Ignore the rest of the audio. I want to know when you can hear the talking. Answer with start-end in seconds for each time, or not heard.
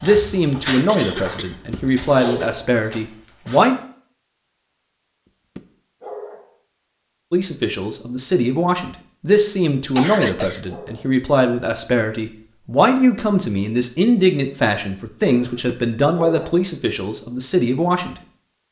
0.0-3.8, 7.3-18.1.